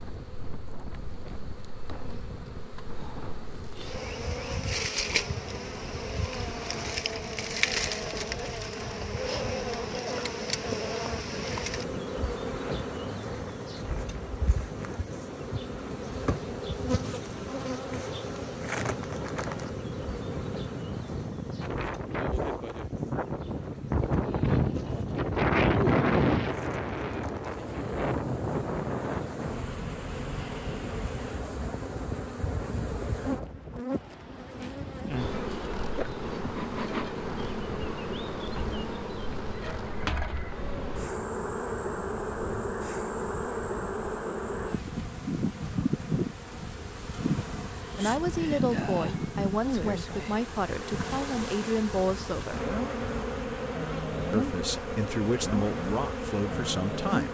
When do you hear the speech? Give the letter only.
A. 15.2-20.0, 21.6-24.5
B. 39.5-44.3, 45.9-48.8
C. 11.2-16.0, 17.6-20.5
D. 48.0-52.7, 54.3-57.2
D.